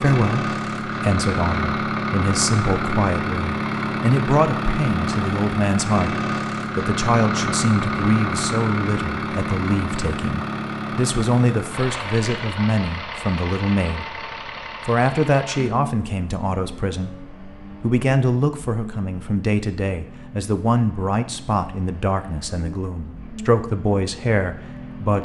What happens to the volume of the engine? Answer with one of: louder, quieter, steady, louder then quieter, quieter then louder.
quieter.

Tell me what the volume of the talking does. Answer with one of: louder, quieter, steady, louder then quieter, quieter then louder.
steady.